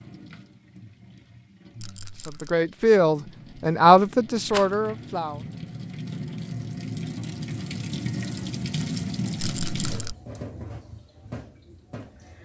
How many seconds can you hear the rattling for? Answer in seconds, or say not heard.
2 s.